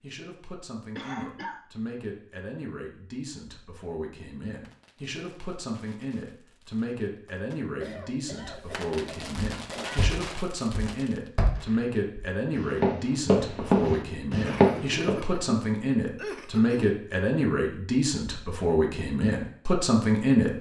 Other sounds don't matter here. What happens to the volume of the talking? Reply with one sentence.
The volume of the talking goes up.